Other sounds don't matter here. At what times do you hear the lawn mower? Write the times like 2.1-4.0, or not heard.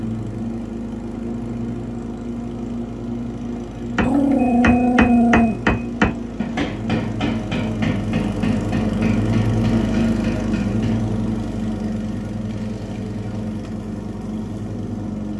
0.0-15.3.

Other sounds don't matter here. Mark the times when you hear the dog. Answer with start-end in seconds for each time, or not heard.
4.0-5.5.